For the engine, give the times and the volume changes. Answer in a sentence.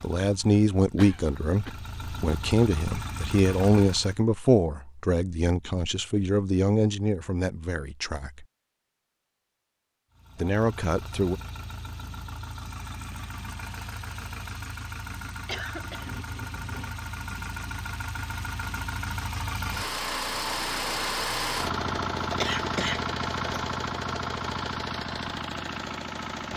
The engine can be heard from 0.0 to 4.2 s, getting louder; and from 10.2 to 26.5 s, getting louder.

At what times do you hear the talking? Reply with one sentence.
The talking can be heard from 0.0 to 8.4 s and from 10.3 to 11.4 s.